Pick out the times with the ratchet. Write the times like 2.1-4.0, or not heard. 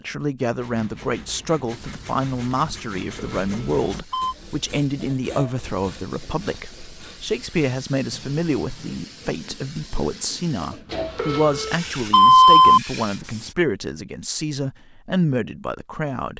not heard.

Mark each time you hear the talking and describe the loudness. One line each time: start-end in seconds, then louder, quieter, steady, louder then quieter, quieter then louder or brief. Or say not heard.
0.0-16.3 steady.